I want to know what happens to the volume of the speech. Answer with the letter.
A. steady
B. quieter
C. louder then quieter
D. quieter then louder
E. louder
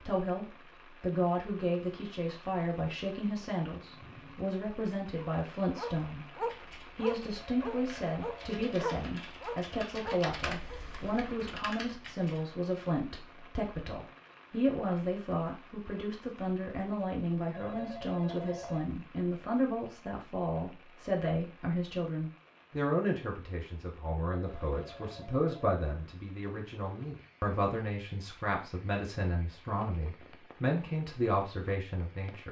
A.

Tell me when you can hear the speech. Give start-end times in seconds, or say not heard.
0.1-32.4.